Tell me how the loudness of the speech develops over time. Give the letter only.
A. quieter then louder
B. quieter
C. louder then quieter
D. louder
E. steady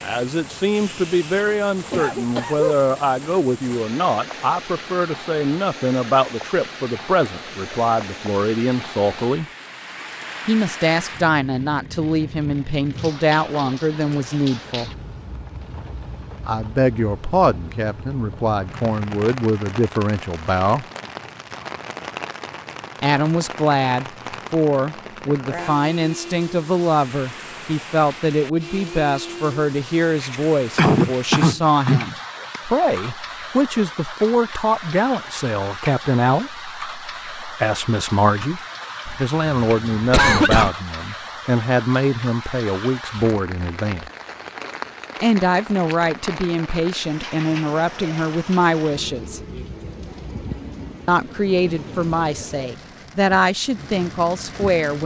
E.